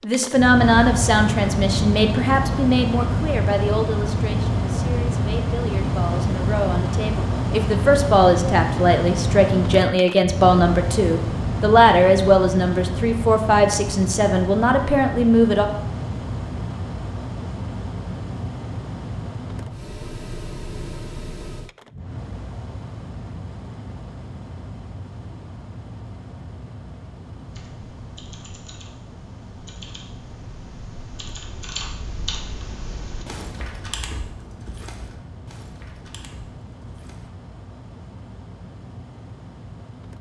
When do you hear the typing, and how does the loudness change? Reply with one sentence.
The typing can be heard from 27.4 to 37.3 s, getting louder then quieter.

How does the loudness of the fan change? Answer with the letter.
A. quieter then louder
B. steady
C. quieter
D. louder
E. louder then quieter
C.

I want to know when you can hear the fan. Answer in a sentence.
You can hear the fan from 0.0 to 40.1 s.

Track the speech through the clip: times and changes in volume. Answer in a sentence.
The speech can be heard from 0.0 to 15.7 s, getting quieter then louder.